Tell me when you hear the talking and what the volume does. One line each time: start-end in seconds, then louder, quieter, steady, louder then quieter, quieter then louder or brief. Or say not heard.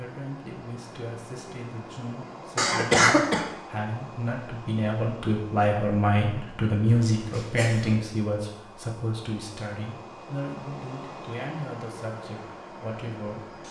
0.0-13.6 louder then quieter.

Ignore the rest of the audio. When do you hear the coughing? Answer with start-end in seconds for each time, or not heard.
2.5-3.5, 7.0-8.1.